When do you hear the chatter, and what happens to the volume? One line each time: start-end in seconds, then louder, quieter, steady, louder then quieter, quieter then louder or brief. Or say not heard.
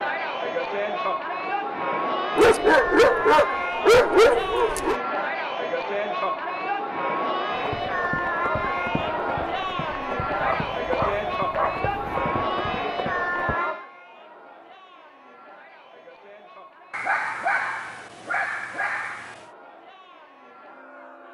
0.0-21.3 quieter.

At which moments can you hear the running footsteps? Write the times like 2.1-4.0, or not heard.
7.5-13.6.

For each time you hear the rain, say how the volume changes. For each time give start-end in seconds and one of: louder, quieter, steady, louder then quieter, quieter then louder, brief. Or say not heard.
not heard.